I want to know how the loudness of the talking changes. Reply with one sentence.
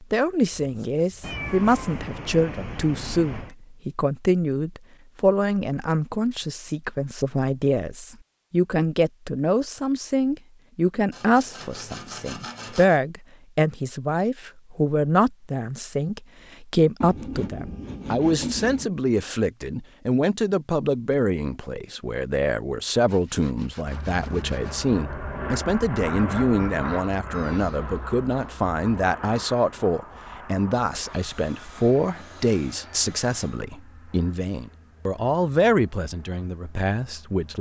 The loudness of the talking stays about the same.